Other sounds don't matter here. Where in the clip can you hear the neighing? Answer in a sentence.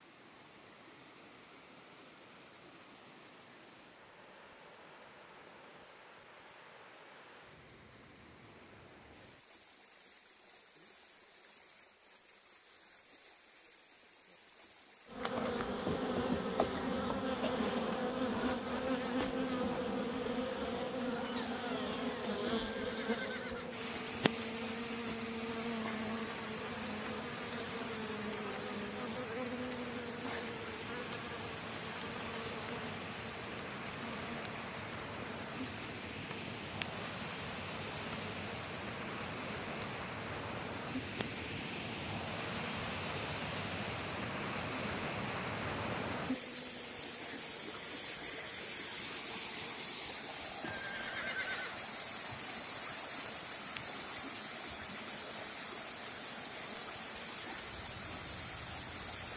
The neighing can be heard from 22.4 to 23.8 s and from 50.6 to 51.8 s.